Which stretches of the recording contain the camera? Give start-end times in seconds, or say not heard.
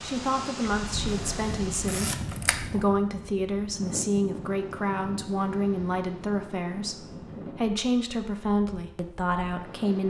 1.1-2.7.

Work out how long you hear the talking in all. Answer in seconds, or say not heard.
10 s.